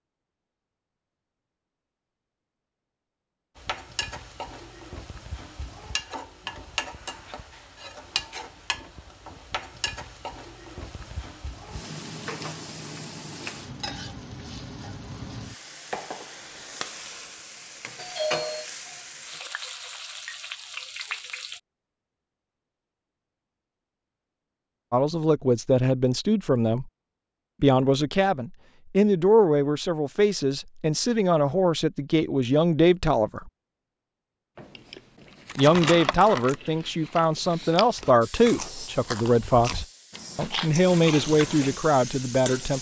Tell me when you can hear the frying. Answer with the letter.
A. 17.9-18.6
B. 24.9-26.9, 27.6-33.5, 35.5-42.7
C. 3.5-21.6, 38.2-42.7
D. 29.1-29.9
C.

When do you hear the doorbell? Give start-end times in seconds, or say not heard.
17.9-18.6.